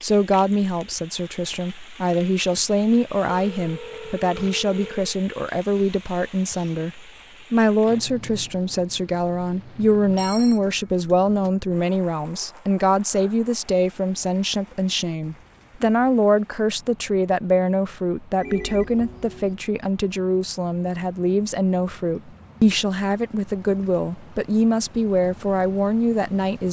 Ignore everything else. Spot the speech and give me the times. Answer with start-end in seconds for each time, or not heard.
0.0-26.6.